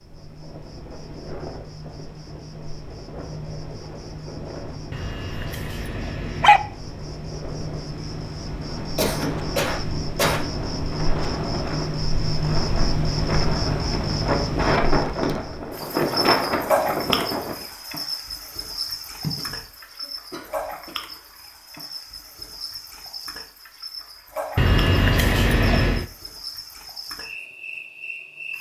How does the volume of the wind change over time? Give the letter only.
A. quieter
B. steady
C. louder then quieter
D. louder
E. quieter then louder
D.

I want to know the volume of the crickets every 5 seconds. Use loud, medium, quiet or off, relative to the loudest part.
quiet, medium, loud, loud, medium, medium.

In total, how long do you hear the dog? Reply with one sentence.
You can hear the dog for 3 seconds altogether.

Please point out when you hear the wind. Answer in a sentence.
The wind can be heard from 0.0 to 17.6 s.